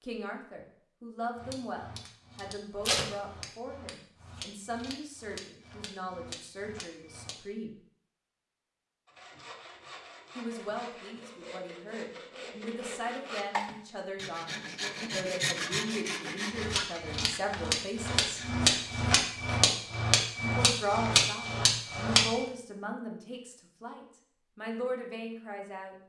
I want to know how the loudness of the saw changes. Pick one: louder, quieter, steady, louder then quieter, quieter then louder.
louder then quieter.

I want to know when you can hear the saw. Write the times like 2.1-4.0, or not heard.
9.1-19.1.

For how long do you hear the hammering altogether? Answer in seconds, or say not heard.
12 s.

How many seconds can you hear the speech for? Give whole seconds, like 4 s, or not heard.
21 s.